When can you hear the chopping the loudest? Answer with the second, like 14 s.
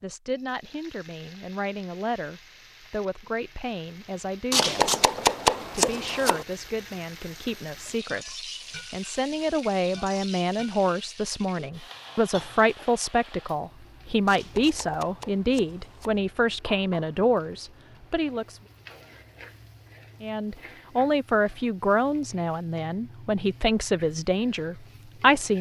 5 s.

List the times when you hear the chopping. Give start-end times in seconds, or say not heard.
4.5-6.5, 14.2-16.2.